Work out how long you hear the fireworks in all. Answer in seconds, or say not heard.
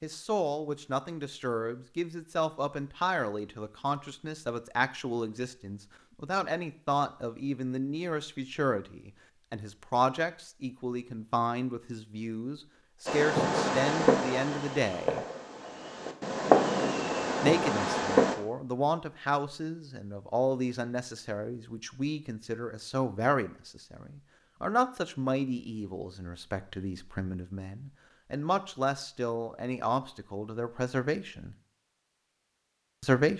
5 s.